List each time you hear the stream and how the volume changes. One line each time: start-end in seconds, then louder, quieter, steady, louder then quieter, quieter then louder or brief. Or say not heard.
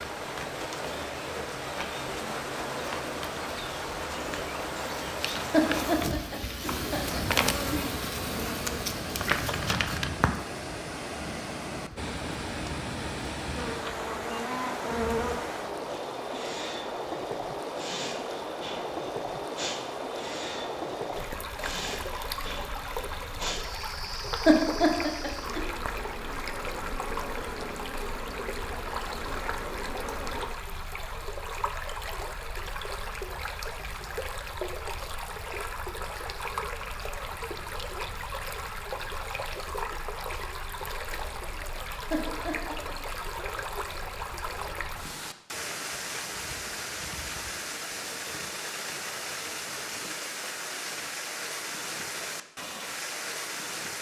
0.0-53.9 steady.